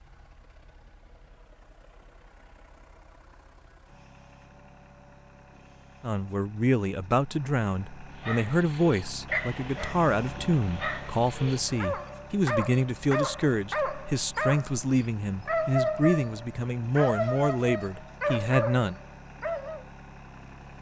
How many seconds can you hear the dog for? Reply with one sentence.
The dog can be heard for 12 seconds in total.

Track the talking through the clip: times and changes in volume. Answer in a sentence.
You can hear the talking from 6.0 to 18.9 s, at a steady volume.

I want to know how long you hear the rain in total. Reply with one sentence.
The rain can't be heard in this clip.